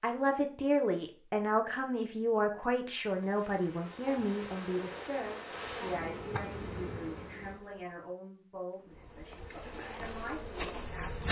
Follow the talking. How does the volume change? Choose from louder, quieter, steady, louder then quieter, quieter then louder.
quieter.